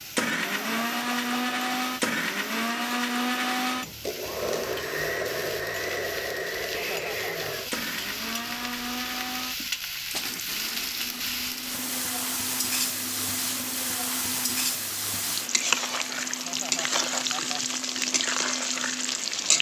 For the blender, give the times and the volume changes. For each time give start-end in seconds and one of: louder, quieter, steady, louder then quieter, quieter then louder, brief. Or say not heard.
0.0-19.5 quieter.